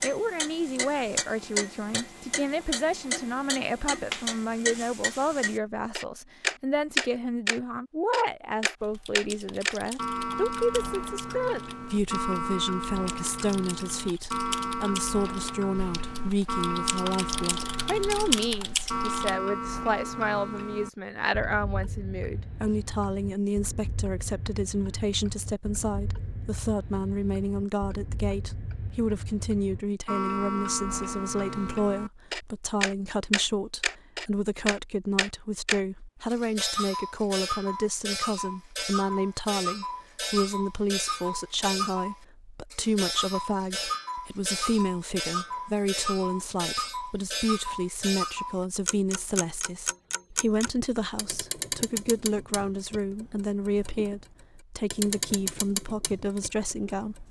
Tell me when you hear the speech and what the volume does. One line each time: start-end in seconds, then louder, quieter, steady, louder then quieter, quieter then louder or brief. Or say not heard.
0.0-57.2 steady.